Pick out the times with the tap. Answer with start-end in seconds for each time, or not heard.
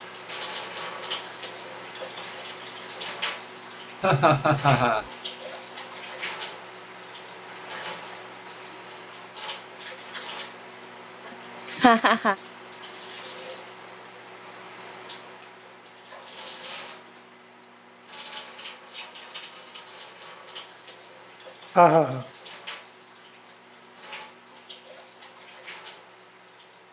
0.0-26.8.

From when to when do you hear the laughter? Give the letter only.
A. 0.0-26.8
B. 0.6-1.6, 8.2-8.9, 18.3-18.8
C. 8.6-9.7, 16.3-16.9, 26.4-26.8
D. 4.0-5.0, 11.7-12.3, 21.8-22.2
D.